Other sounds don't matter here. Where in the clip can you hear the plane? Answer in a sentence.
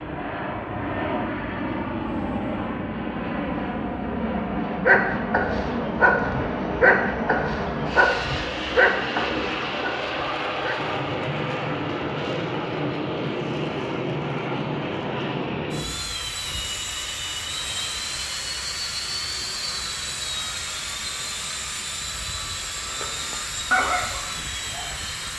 The plane can be heard from 0.0 to 25.3 s.